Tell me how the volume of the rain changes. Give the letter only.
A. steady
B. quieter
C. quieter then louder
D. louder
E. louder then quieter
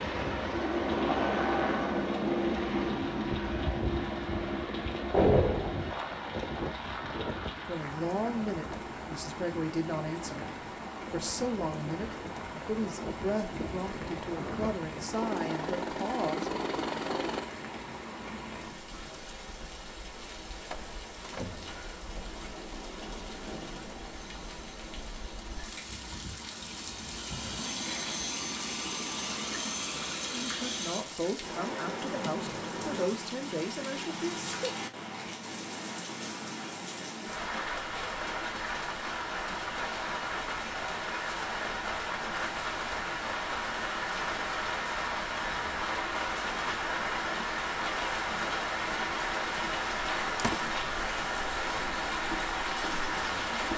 D.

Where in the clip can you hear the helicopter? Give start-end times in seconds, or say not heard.
0.0-17.4, 22.3-31.1.